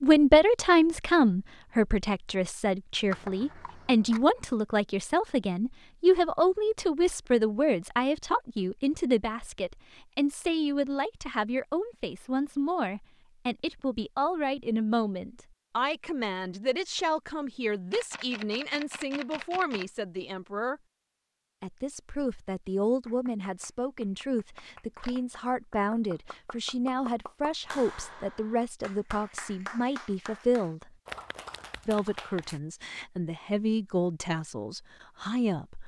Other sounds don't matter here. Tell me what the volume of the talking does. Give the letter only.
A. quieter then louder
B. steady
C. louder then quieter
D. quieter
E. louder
D.